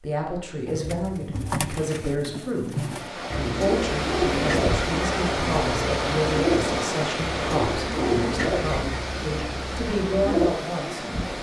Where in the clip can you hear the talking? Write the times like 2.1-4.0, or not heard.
0.0-11.1.